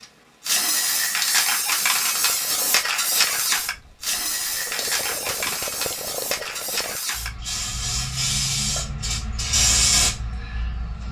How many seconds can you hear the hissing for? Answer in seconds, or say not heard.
11 s.